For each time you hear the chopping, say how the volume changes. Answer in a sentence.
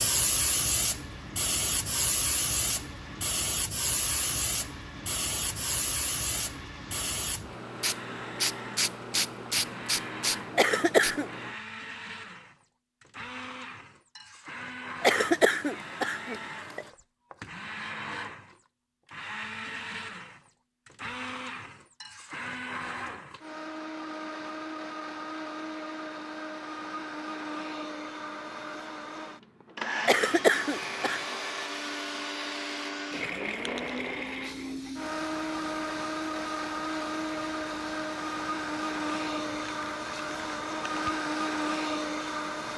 The chopping can't be heard in this clip.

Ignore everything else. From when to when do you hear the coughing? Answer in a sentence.
The coughing can be heard from 10.6 to 11.3 s, from 15.0 to 16.9 s and from 30.1 to 31.2 s.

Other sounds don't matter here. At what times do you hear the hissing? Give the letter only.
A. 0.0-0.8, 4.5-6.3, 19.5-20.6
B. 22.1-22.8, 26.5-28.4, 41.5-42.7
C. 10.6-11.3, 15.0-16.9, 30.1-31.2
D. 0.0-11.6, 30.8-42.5
D.